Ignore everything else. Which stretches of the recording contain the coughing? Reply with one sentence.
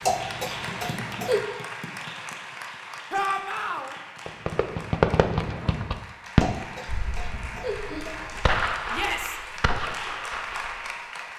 The coughing can be heard from 0.0 to 1.4 s and from 6.3 to 8.4 s.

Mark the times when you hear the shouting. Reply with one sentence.
You can hear the shouting from 3.1 to 4.0 s and from 8.9 to 9.4 s.